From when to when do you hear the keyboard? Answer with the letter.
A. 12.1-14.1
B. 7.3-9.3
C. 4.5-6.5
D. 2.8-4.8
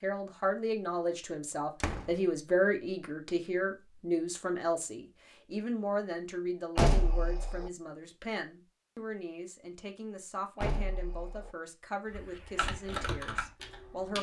A.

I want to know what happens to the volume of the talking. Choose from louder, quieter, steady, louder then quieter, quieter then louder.
quieter.